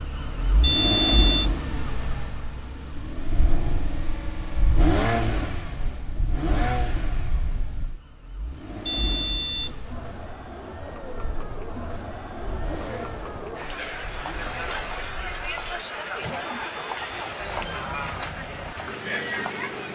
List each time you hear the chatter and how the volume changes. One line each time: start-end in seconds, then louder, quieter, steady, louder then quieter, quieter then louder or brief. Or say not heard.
9.7-19.8 louder.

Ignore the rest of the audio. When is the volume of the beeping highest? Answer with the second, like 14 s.
1 s.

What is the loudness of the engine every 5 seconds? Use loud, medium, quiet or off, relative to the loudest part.
loud, loud, quiet, medium.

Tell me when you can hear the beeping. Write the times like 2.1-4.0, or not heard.
0.6-1.5, 8.8-9.8, 16.4-18.0.